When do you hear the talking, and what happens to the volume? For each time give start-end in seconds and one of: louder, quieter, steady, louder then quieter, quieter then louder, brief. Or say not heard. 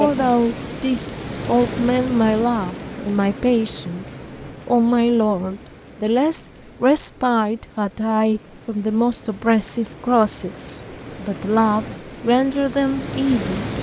0.0-13.7 steady.